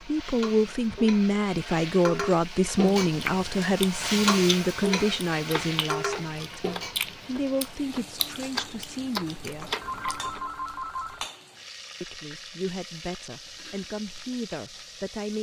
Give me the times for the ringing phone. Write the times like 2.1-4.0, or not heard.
9.8-11.2.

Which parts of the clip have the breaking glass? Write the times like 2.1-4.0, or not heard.
not heard.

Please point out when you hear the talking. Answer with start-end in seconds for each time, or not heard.
0.0-6.7, 7.2-9.8, 12.0-15.3.